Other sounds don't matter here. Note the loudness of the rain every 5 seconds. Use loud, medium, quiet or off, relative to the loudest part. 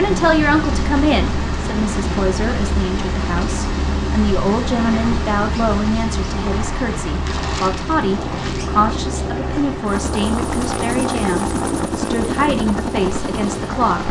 loud, loud, medium.